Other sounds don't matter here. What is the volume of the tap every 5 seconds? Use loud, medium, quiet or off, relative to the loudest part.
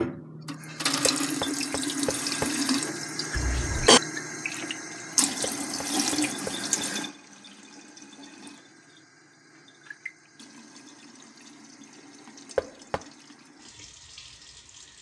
loud, loud, quiet.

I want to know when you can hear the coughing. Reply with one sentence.
The coughing can be heard from 3.4 to 4.0 s.